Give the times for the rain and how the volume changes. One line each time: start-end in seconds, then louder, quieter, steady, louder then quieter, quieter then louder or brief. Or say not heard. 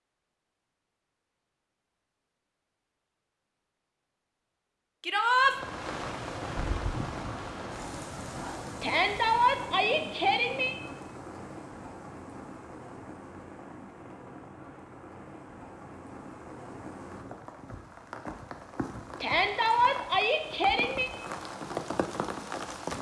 5.4-22.9 quieter then louder.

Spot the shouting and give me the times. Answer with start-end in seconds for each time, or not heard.
5.0-5.5, 8.8-10.8, 19.2-21.1.